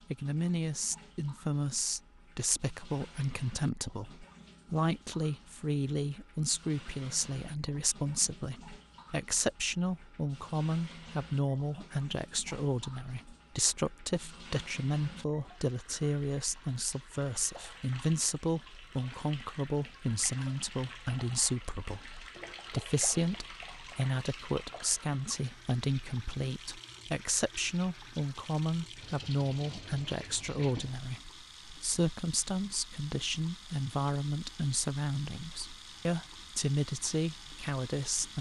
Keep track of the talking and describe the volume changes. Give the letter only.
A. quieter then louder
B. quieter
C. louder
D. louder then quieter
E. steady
E.